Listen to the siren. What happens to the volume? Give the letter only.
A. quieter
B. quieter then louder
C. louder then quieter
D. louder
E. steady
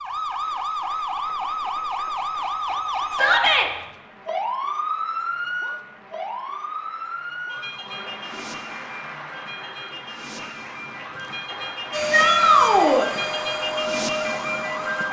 B.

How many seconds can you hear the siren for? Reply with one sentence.
The siren can be heard for 15 seconds in total.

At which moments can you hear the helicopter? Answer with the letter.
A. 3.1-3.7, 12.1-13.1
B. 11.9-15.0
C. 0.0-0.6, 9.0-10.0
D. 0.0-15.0
B.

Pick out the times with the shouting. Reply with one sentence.
The shouting can be heard from 3.1 to 3.7 s and from 12.1 to 13.1 s.